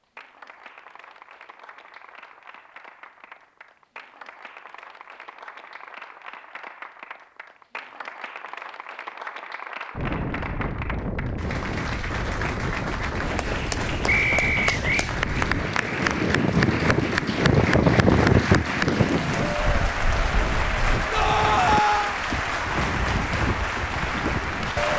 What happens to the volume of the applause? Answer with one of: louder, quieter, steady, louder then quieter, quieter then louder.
louder.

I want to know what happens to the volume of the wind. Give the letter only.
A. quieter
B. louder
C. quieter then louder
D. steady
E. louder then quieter
E.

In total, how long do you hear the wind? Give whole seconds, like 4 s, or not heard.
15 s.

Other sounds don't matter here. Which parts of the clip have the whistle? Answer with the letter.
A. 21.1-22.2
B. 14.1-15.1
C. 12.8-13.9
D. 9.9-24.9
B.